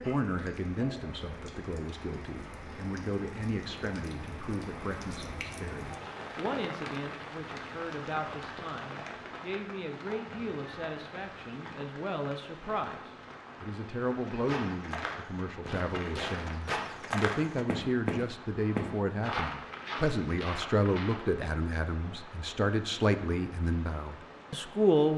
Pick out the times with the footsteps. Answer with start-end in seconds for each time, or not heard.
14.3-21.4.